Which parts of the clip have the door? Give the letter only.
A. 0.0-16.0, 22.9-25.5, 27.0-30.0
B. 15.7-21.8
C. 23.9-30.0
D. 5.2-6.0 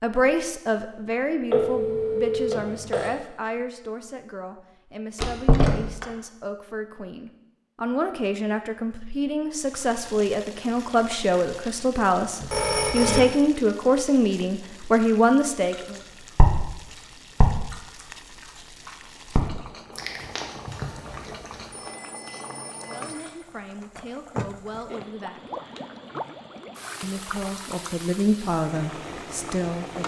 D.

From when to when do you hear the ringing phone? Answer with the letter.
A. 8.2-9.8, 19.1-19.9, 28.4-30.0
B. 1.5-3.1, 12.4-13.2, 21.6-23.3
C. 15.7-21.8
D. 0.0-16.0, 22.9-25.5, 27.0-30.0
B.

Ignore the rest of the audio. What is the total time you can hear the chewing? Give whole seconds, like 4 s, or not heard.
6 s.